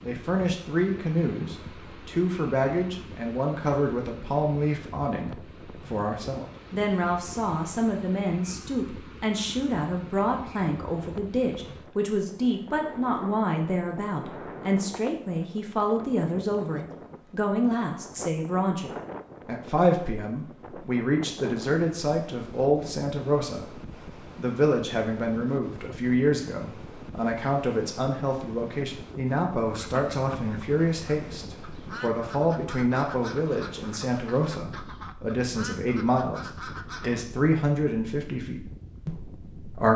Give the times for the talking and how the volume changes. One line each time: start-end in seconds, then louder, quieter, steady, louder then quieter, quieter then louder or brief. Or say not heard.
0.0-39.9 steady.